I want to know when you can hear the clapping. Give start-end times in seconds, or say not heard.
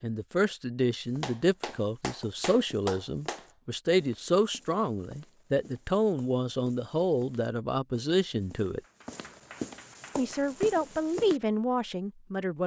1.2-3.5, 8.8-10.6.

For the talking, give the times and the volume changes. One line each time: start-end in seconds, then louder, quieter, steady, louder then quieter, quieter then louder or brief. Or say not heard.
0.0-8.8 steady
10.2-12.6 brief.